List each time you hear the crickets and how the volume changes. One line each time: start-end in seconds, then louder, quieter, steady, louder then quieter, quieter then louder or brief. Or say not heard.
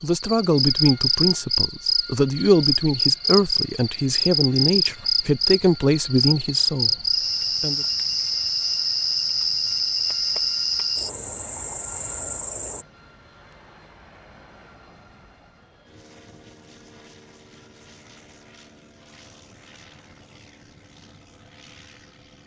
0.0-12.8 steady.